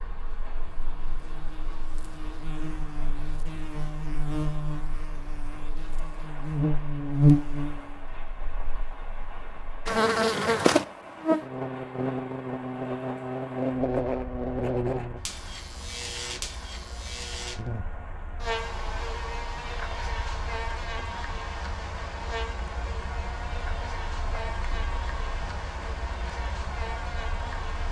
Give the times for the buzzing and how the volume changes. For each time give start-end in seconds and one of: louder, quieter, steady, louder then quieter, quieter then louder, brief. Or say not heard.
0.1-27.8 louder then quieter.